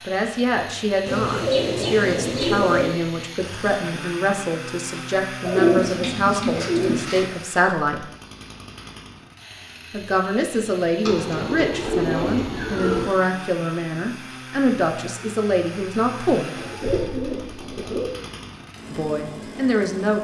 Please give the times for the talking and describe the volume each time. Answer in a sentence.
The talking can be heard from 0.0 to 8.1 s, at a steady volume; from 9.9 to 16.5 s, at a steady volume; and briefly from 18.9 to 20.1 s.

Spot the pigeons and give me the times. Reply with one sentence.
The pigeons can be heard from 1.1 to 3.0 s, from 5.5 to 7.2 s, from 11.1 to 13.1 s and from 16.6 to 18.1 s.